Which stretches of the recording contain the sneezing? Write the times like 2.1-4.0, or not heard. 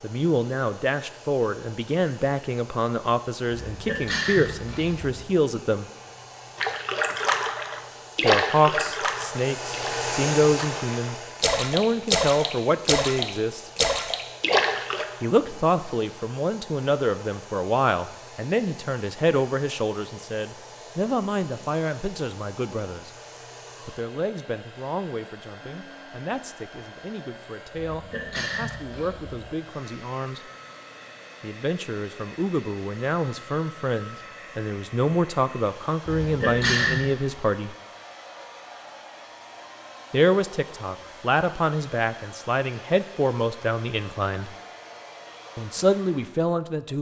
3.5-5.2, 27.8-29.4, 36.0-37.0.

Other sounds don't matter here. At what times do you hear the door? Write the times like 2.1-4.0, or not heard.
not heard.